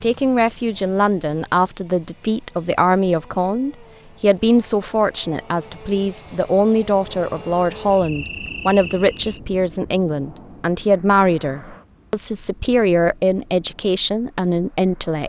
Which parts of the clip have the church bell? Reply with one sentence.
You can't hear the church bell here.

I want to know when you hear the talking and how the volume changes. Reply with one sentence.
You can hear the talking from 0.0 to 15.2 s, at a steady volume.